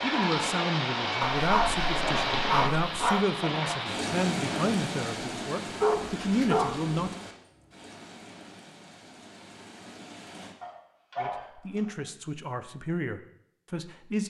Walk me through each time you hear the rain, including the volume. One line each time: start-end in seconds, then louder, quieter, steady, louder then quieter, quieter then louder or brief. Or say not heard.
0.0-10.6 quieter.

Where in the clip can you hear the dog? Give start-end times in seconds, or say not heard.
1.2-3.2, 5.8-7.1, 10.6-11.9.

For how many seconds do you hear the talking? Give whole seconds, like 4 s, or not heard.
10 s.